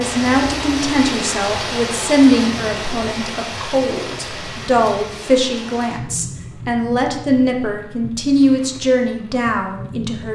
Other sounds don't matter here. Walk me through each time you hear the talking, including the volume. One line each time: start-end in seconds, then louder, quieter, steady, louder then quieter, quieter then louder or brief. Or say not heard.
0.0-10.3 steady.